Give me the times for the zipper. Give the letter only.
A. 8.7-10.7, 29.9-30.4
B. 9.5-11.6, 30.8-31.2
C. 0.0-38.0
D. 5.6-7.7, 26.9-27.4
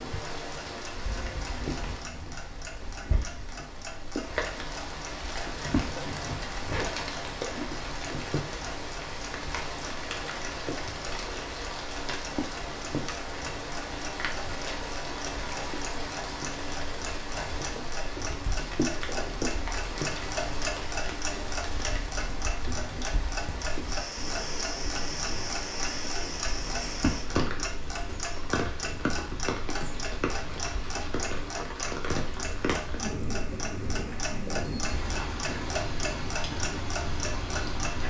D.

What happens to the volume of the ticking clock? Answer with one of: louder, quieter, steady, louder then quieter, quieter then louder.
louder.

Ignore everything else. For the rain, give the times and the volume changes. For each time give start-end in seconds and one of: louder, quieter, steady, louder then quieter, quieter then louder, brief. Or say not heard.
0.0-38.0 steady.